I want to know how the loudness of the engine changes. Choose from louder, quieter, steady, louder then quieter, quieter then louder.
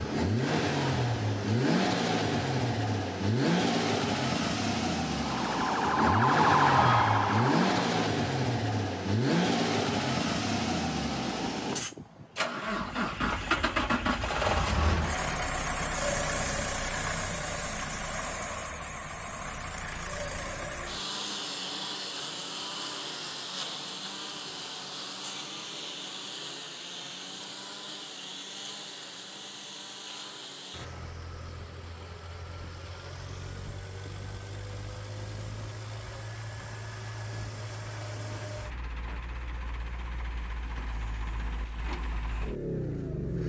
quieter.